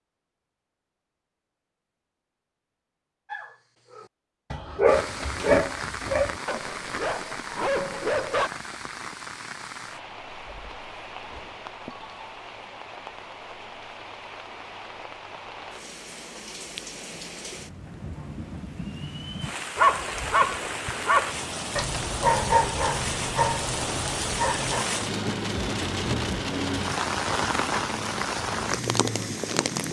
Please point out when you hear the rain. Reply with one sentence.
The rain can be heard from 4.8 to 29.8 s.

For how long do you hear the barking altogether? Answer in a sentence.
The barking can be heard for 10 seconds in total.